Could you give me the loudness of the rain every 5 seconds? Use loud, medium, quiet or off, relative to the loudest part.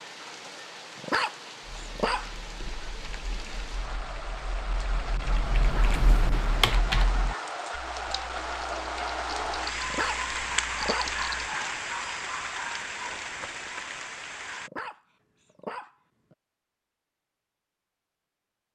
medium, loud, loud, off.